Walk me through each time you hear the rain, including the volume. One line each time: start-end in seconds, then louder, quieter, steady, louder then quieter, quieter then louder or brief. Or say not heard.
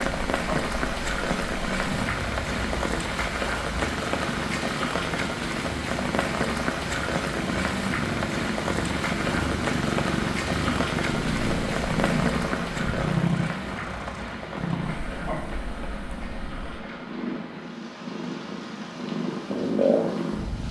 0.0-20.6 quieter.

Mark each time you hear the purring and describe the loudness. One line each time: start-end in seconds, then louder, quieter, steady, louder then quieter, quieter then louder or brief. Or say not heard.
0.0-20.6 louder.